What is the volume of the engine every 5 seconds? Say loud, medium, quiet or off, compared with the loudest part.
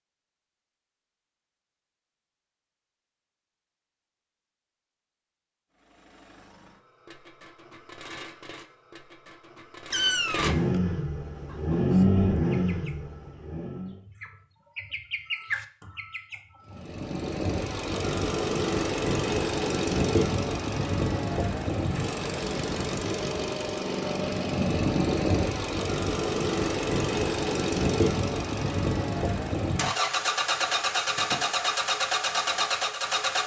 off, quiet, loud, loud, loud, loud, loud.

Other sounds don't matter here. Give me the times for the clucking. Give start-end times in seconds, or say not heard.
11.3-16.9.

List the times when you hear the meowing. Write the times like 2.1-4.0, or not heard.
9.9-10.8.